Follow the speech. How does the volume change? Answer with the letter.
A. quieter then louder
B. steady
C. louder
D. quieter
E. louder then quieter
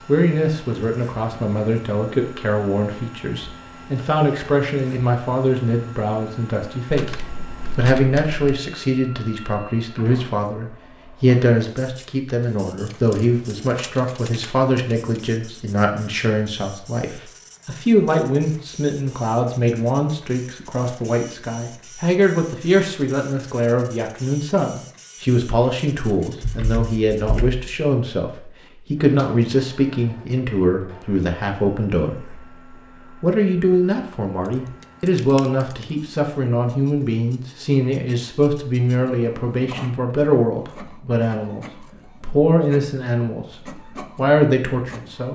B.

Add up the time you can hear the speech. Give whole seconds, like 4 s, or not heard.
44 s.